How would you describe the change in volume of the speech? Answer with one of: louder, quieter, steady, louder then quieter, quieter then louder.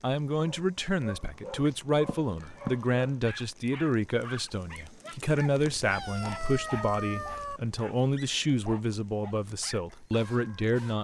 steady.